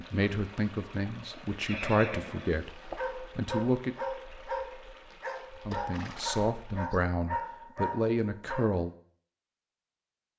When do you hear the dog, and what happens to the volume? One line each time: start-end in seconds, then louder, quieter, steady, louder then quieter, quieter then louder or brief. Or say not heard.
2.8-8.8 steady.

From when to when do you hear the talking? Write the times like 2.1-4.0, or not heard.
0.0-4.0, 5.7-8.9.